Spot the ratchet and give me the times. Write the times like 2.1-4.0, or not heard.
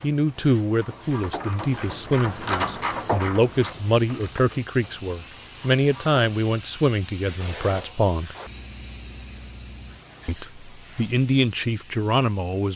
0.0-6.2.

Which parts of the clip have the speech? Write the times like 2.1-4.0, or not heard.
0.0-8.3, 10.2-12.7.